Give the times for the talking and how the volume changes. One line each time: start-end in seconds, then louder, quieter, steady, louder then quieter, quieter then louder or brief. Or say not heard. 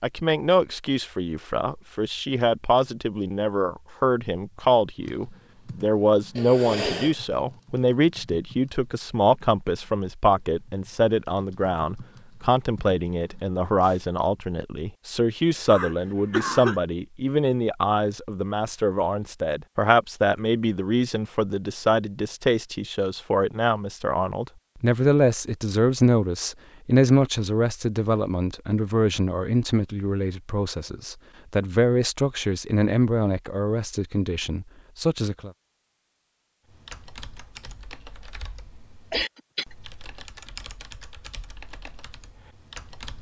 0.0-35.5 steady.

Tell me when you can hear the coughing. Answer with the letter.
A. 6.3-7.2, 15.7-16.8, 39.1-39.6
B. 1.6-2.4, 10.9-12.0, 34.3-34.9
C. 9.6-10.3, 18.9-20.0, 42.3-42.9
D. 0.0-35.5
A.